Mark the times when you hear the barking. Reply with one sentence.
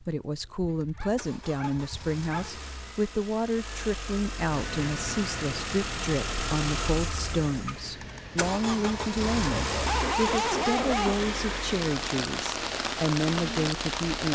The barking can be heard from 0.6 to 2.5 s and from 9.2 to 12.1 s.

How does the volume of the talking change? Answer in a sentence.
The loudness of the talking stays about the same.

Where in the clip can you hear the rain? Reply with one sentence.
The rain can be heard from 4.5 to 14.3 s.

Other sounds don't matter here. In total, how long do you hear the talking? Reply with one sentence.
You can hear the talking for 14 seconds altogether.